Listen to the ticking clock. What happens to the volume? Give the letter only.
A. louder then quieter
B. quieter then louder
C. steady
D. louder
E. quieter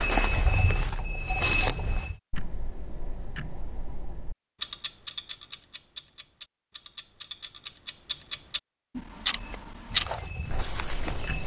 D.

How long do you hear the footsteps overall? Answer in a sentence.
The footsteps can be heard for 4 seconds in total.